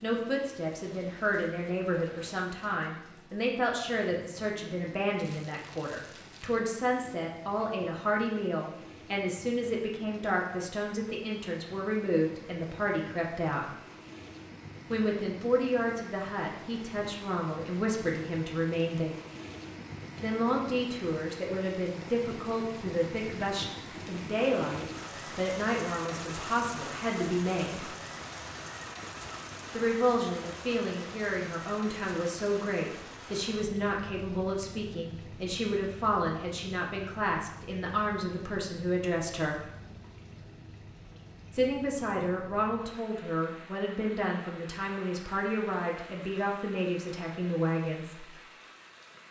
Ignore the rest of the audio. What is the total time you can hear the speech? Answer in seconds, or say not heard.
42 s.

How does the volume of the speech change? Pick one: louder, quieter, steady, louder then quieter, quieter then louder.
steady.